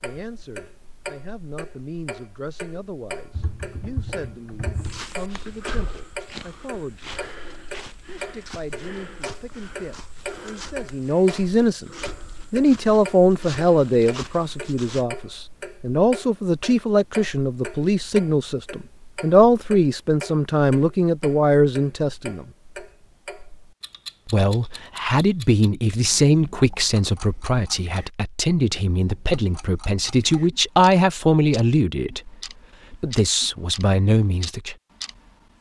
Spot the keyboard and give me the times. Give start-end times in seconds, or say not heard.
3.3-5.0.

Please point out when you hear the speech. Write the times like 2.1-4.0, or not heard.
0.0-7.2, 8.1-11.9, 12.5-22.4, 24.2-32.3, 32.9-34.8.